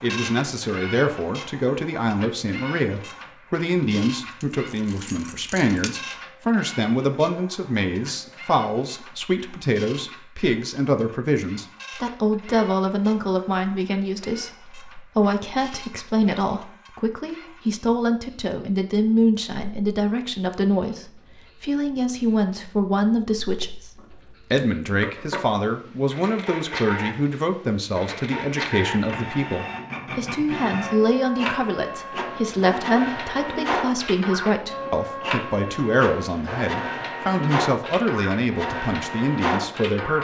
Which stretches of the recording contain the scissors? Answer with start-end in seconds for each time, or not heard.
23.9-25.4.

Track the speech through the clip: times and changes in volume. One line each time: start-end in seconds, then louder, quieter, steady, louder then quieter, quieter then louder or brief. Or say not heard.
0.0-40.1 steady.